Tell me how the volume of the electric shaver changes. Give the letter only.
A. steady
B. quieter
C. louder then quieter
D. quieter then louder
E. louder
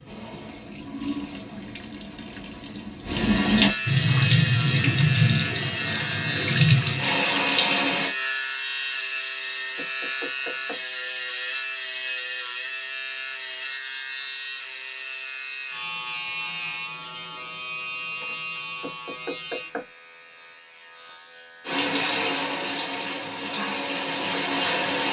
B.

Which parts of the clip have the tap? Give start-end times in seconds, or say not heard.
0.0-8.2, 21.6-25.0.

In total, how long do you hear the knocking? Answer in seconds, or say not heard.
2 s.